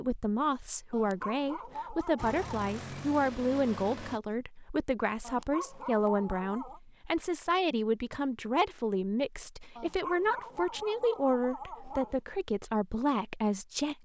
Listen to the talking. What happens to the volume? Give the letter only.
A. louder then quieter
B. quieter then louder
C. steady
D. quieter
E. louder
C.